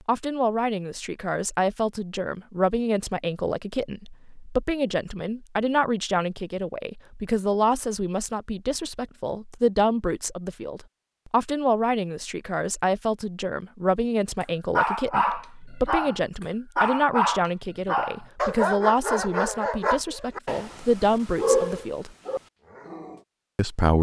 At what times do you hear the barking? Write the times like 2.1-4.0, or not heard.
14.4-23.2.